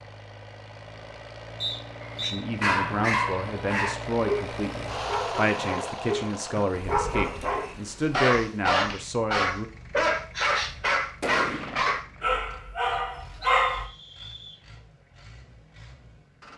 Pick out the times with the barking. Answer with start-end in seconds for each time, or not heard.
2.0-13.8.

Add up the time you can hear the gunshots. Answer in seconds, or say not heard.
2 s.